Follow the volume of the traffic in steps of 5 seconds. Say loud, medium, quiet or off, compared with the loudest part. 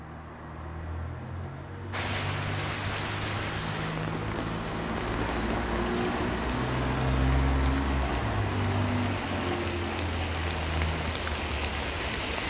medium, loud, medium.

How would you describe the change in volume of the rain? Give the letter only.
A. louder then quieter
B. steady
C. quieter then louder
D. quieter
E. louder
C.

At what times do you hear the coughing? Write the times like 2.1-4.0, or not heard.
not heard.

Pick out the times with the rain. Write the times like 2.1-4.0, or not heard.
1.9-12.4.